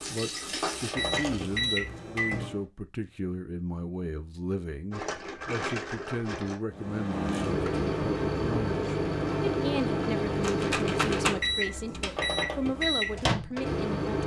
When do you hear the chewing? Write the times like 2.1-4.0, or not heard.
not heard.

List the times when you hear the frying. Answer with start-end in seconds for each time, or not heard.
0.0-1.6.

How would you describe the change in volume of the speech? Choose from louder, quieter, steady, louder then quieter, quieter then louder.
steady.